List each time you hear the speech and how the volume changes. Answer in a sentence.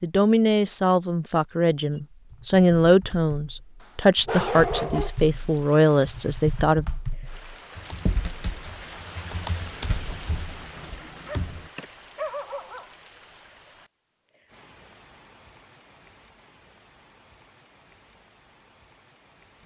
The speech can be heard from 0.0 to 6.8 s, at a steady volume.